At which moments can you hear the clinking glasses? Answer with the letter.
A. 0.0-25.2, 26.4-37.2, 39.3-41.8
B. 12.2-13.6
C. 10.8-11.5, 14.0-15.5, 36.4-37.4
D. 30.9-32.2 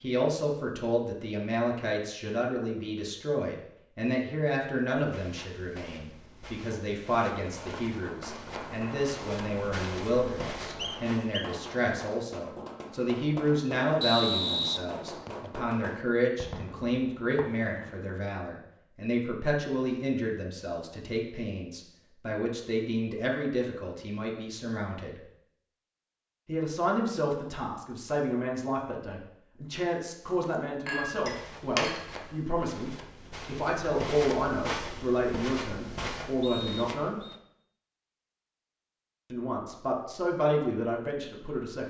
D.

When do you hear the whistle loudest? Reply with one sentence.
The volume of the whistle peaks at 14 seconds.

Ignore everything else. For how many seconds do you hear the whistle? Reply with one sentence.
You can hear the whistle for 3 seconds altogether.